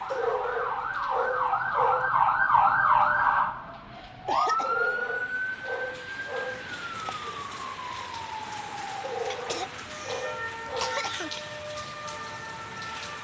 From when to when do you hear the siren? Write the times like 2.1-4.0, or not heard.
0.0-13.2.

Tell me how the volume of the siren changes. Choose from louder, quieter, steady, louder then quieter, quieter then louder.
quieter.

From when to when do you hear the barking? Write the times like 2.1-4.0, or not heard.
0.1-2.1, 4.6-6.7, 9.0-11.1.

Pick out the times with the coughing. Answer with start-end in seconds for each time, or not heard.
3.9-4.8, 9.2-11.3.